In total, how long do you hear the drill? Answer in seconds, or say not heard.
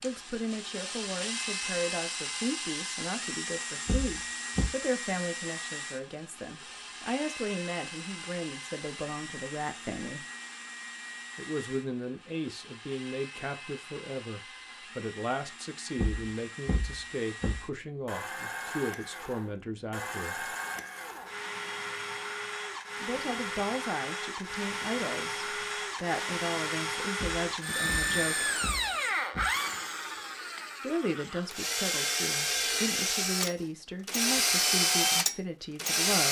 36 s.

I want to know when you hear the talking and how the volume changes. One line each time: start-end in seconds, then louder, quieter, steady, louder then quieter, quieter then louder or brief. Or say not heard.
0.0-10.2 steady
11.3-20.6 steady
23.0-28.6 steady
30.8-36.2 steady.